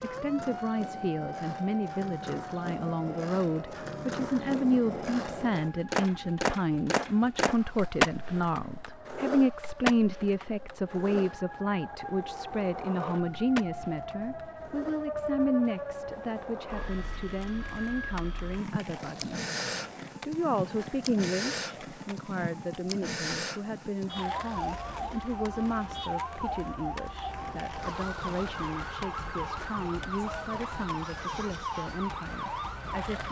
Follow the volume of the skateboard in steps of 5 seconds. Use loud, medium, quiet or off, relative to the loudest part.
medium, loud, medium, quiet, quiet, quiet, quiet.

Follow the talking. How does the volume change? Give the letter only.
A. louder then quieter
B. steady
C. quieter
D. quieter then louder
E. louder
C.